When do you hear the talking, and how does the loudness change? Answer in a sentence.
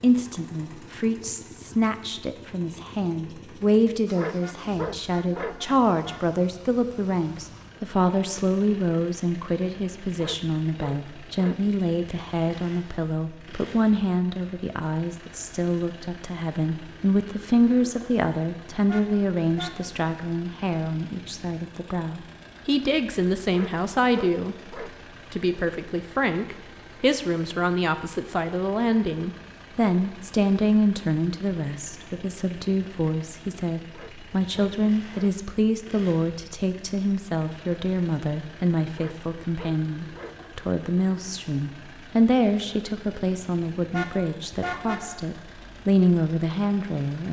The talking can be heard from 0.0 to 47.2 s, at a steady volume.